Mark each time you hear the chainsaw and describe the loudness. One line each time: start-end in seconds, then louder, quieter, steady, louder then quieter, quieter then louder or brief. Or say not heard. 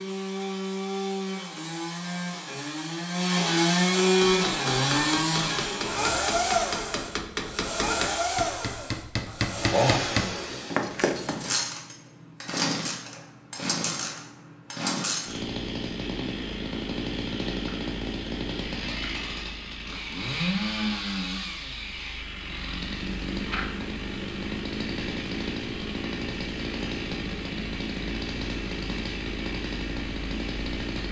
0.0-31.0 quieter.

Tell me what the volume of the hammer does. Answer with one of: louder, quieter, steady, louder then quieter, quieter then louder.
louder.